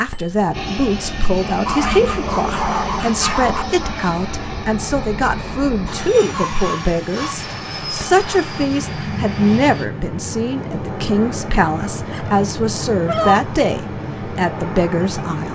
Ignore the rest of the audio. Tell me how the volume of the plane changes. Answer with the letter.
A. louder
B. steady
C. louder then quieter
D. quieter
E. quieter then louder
B.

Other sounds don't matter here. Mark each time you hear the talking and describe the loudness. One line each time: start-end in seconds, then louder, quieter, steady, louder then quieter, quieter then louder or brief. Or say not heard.
0.0-15.5 steady.